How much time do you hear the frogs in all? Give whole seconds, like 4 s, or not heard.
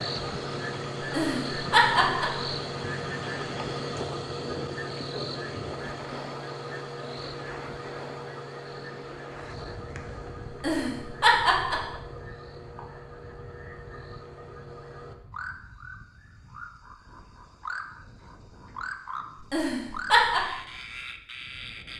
22 s.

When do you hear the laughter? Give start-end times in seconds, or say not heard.
1.0-2.4, 10.5-11.9, 19.4-20.4.